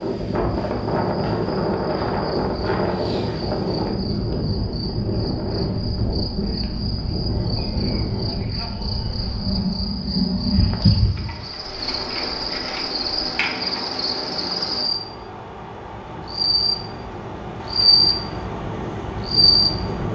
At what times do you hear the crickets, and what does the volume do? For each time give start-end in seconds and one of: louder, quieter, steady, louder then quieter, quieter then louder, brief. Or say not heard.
0.0-20.0 louder.